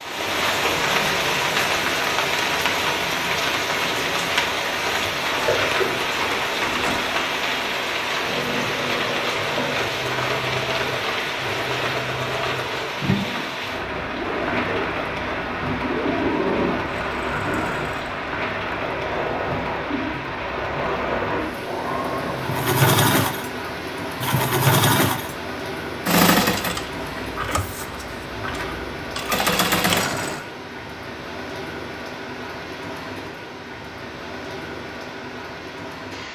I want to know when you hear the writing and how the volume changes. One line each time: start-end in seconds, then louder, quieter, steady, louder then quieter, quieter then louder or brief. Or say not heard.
not heard.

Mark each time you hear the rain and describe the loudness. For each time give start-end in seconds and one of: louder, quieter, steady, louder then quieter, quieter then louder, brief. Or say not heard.
0.0-36.3 quieter.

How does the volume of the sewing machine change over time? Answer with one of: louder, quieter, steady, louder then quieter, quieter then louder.
louder.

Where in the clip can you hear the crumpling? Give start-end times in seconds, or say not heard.
5.3-7.0.